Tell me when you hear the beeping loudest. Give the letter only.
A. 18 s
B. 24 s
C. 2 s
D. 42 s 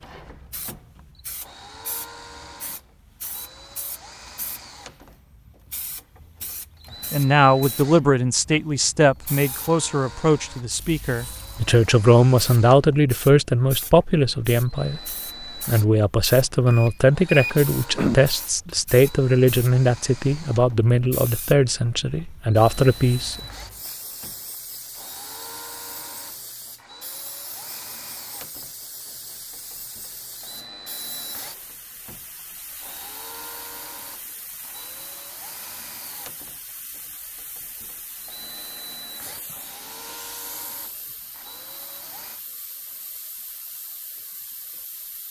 A.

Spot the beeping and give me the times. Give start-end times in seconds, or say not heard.
16.6-18.1.